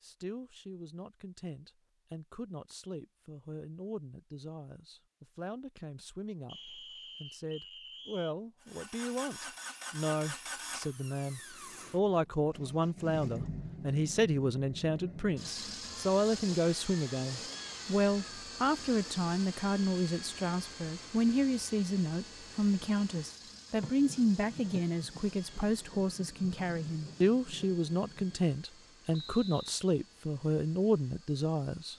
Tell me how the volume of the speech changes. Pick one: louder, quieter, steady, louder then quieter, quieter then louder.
louder.